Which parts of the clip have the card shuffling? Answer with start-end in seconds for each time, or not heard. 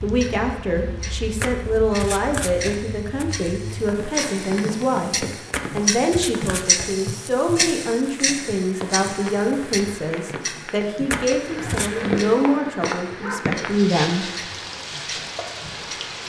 1.4-3.2, 5.5-6.9, 11.1-11.9.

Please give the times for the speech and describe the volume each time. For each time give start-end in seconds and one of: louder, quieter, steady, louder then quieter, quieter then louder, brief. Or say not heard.
0.0-14.3 steady.